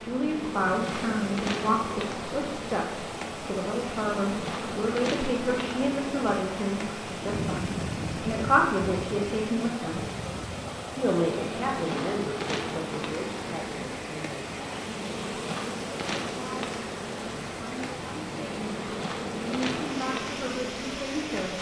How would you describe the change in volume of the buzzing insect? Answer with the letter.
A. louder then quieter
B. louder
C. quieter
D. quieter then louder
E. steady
E.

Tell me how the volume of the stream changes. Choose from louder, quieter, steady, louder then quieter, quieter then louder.
steady.